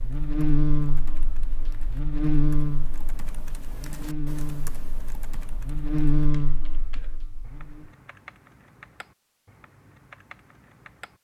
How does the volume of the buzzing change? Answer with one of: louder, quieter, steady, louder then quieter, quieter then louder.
quieter then louder.